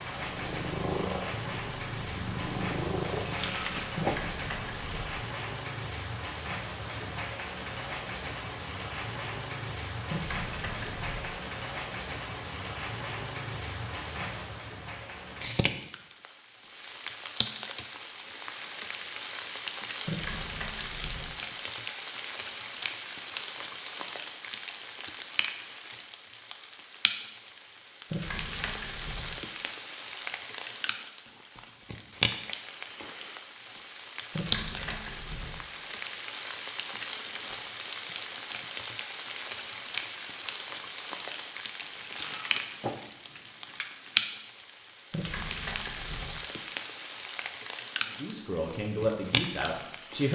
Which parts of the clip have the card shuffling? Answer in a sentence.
The card shuffling can be heard from 3.0 to 4.2 s and from 41.8 to 44.2 s.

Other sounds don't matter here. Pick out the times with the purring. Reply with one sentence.
The purring can be heard from 0.1 to 3.8 s.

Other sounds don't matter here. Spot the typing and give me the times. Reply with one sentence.
The typing can be heard from 4.0 to 5.2 s, from 10.1 to 11.3 s, from 20.1 to 21.4 s, from 28.1 to 29.4 s, from 34.3 to 35.6 s and from 45.1 to 46.4 s.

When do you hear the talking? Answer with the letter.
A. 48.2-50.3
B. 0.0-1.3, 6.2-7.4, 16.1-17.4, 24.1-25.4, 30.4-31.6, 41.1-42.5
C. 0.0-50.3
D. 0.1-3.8
A.